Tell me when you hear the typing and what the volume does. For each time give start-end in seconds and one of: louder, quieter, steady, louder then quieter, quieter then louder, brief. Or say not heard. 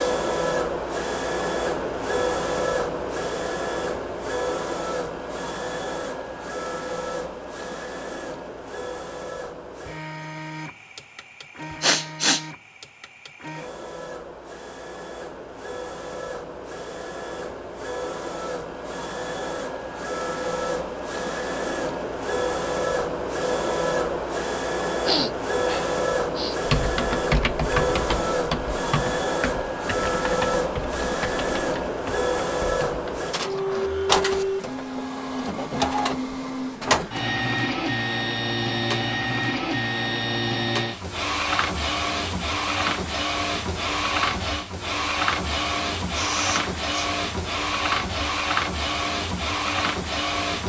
26.6-33.2 quieter.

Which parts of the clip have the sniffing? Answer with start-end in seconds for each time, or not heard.
11.8-12.4, 25.1-26.6, 46.1-47.1.